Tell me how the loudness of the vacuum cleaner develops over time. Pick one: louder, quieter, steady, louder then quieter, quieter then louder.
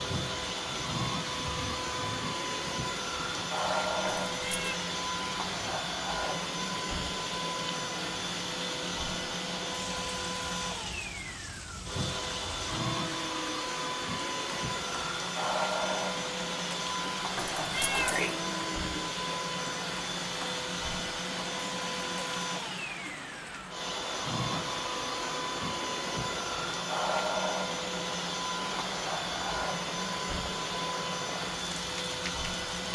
steady.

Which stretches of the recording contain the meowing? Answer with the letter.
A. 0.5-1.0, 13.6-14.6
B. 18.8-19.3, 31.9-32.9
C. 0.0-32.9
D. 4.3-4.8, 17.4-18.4
D.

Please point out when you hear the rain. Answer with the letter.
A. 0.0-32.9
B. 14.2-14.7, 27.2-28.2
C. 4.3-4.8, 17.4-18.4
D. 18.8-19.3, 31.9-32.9
A.